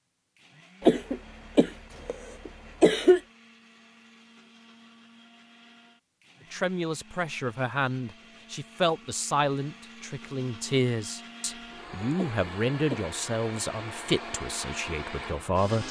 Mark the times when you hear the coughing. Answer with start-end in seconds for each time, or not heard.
0.8-3.2, 12.2-13.1.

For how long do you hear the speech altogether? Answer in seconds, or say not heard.
9 s.